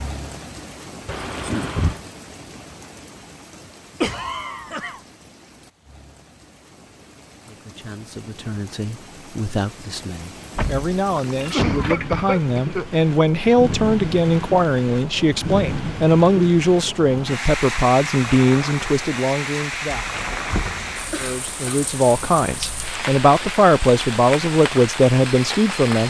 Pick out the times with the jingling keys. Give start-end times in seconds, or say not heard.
1.1-2.0, 10.6-12.2, 20.0-21.3.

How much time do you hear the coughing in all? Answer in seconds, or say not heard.
3 s.